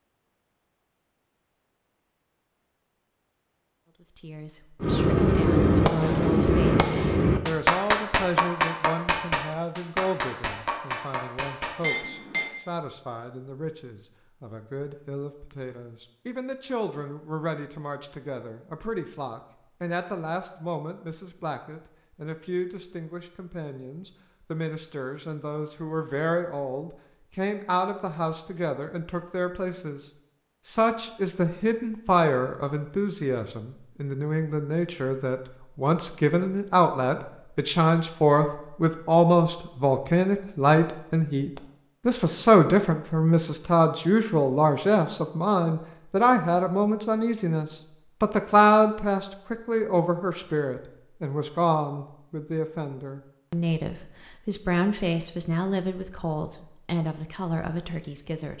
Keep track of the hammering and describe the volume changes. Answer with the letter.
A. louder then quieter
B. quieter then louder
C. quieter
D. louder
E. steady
C.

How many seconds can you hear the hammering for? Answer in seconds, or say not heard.
8 s.